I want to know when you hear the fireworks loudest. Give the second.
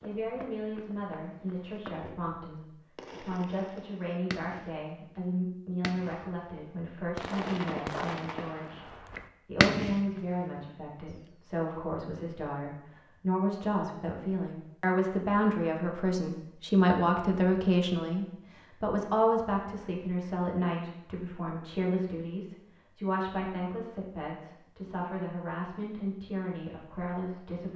10 s.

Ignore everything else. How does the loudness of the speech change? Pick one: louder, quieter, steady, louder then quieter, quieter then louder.
louder then quieter.